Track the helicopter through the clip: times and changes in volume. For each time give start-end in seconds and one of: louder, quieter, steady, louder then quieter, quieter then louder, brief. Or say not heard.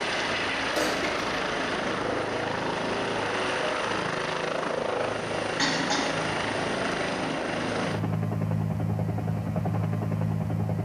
0.0-10.7 steady.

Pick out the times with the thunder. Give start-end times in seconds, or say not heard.
not heard.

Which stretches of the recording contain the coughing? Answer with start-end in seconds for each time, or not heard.
0.7-1.4, 5.5-6.2.